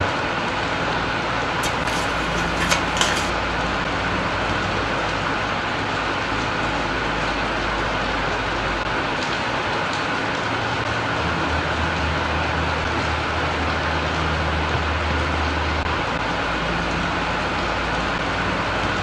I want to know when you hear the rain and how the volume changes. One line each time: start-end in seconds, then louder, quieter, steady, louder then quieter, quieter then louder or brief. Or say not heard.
0.0-18.9 steady.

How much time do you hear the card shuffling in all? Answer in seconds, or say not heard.
2 s.